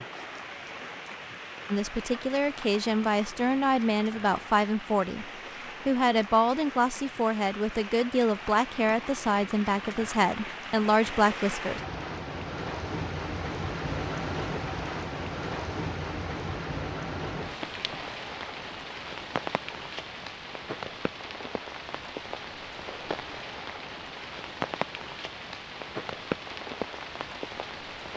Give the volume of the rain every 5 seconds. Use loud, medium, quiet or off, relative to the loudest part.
medium, medium, loud, loud, loud, loud.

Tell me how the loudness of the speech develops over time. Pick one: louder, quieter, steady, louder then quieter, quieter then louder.
steady.